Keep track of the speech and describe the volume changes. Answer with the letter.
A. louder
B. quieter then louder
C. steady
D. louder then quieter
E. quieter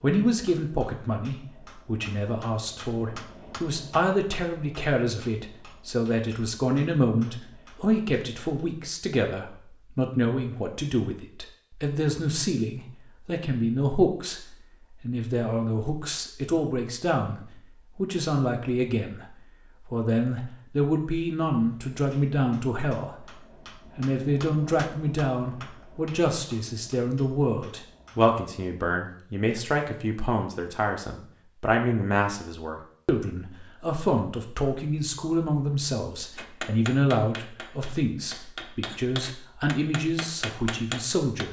C.